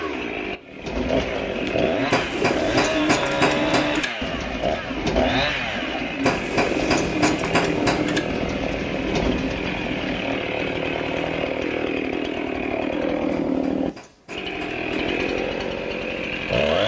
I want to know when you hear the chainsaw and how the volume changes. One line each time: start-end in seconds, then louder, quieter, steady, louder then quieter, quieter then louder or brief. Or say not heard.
0.0-16.8 steady.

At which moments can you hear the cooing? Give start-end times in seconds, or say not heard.
0.8-10.4.